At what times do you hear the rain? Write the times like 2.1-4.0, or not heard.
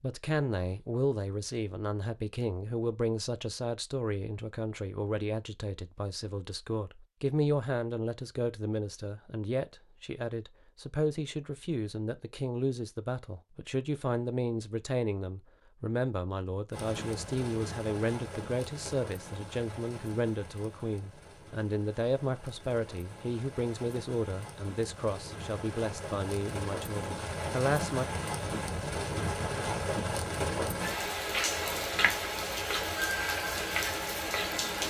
16.7-34.8.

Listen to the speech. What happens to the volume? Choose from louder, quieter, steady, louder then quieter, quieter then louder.
steady.